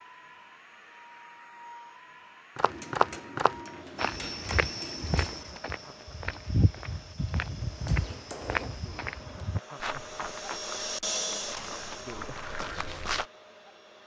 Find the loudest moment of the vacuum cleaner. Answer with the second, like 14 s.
11 s.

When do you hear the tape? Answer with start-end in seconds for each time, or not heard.
not heard.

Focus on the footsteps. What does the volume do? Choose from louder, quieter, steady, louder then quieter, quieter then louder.
quieter.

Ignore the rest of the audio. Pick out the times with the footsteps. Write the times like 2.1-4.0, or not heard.
2.5-13.2.